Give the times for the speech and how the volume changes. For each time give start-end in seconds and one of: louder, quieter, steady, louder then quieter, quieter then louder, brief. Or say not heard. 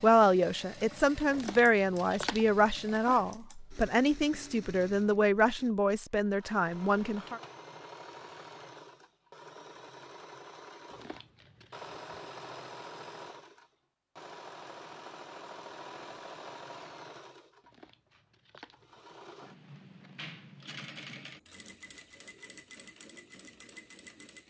0.0-7.4 steady.